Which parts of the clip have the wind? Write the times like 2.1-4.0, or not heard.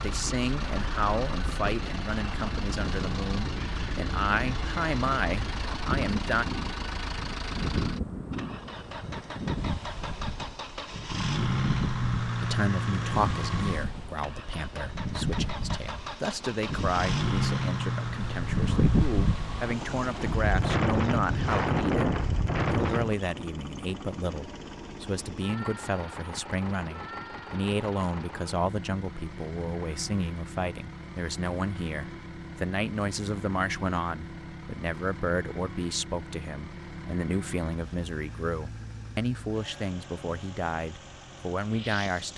0.0-23.2.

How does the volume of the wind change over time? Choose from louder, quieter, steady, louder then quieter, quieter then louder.
louder.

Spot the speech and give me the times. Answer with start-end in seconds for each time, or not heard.
0.0-6.5, 12.4-22.1, 22.7-42.3.